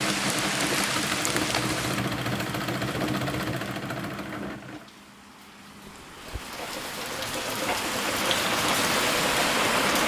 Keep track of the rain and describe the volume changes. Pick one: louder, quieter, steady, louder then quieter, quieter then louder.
quieter then louder.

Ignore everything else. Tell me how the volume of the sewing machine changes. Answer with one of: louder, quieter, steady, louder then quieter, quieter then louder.
quieter then louder.